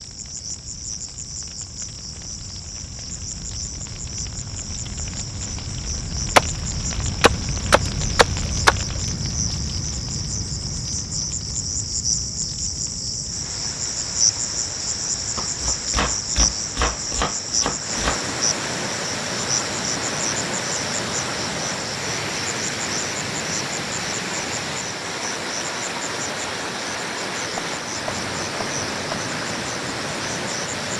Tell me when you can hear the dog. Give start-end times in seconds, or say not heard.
not heard.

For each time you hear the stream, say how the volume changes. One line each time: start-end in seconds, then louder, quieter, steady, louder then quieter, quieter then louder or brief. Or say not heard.
13.2-30.9 louder.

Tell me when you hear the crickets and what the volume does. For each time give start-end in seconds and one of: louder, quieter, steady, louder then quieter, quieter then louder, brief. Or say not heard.
0.0-30.9 louder then quieter.